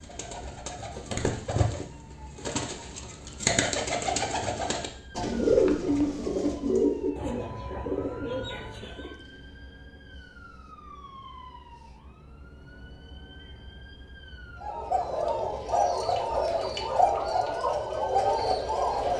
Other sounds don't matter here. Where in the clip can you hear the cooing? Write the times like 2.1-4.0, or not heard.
0.0-9.2, 14.6-19.1.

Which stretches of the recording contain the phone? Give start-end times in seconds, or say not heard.
not heard.